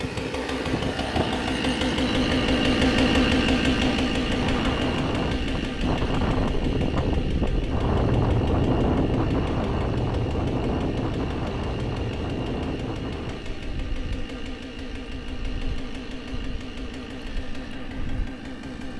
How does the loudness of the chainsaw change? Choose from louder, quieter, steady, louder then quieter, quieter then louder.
quieter.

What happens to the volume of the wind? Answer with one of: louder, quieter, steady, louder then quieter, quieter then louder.
louder then quieter.